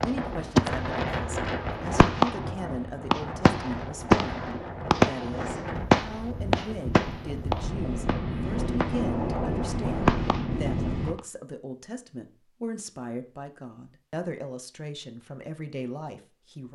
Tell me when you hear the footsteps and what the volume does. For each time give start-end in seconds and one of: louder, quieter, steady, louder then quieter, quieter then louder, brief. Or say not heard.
not heard.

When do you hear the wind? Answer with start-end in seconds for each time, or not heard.
0.0-11.2.